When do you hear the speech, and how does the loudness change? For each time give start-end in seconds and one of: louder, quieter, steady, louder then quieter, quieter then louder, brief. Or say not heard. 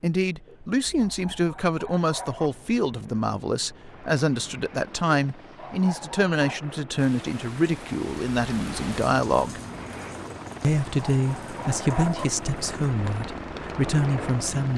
0.0-9.6 steady
10.6-14.7 quieter then louder.